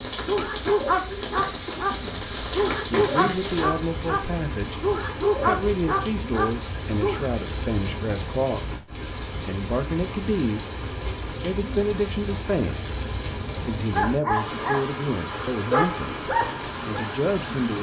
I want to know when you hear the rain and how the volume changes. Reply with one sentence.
The rain can be heard from 0.0 to 17.7 s, at a steady volume.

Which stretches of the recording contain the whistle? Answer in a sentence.
You can't hear the whistle here.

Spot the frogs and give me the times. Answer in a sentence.
You can't hear the frogs here.